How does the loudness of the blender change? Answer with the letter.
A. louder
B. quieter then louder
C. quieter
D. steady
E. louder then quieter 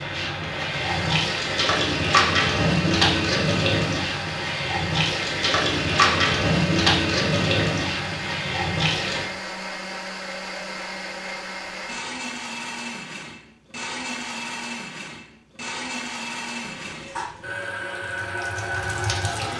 D.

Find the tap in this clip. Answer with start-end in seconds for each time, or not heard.
0.0-9.3, 16.8-19.5.